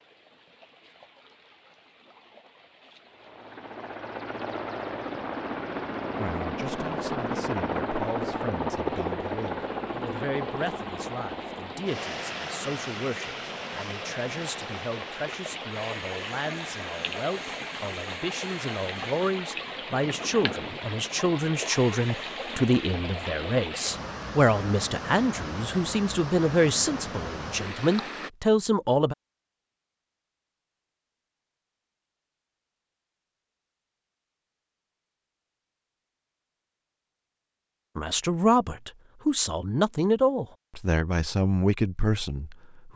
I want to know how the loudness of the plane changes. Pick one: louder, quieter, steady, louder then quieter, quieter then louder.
quieter.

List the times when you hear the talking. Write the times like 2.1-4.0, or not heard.
6.2-29.1, 38.0-42.9.